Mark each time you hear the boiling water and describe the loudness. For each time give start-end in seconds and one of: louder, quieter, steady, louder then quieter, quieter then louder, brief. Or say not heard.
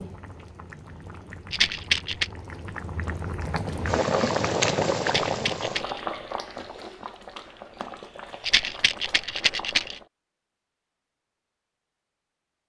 0.0-10.1 louder then quieter.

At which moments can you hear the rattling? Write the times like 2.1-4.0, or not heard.
1.5-2.3, 5.0-6.0, 8.4-10.0.